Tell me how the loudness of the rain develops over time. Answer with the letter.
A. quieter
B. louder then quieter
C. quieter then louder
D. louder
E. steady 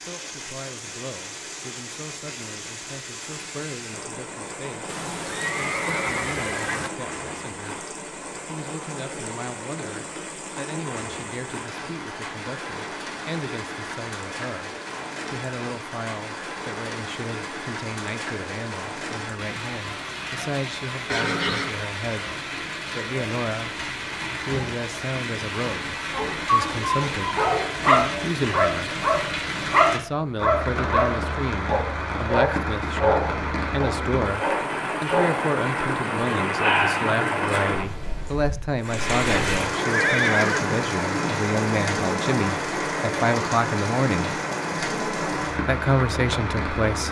D.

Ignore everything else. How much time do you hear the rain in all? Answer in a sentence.
The rain can be heard for 47 seconds in total.